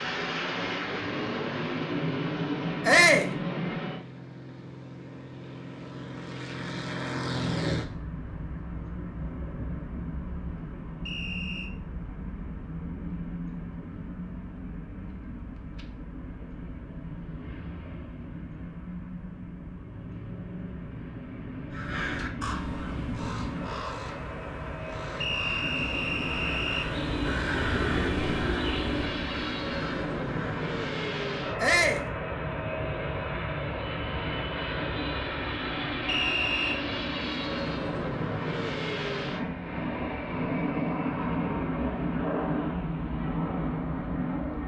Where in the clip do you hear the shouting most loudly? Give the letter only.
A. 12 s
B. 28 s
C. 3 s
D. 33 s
C.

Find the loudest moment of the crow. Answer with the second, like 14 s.
28 s.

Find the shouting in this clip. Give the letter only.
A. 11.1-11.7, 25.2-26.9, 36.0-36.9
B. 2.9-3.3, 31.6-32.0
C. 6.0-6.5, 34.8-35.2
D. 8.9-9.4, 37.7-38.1
B.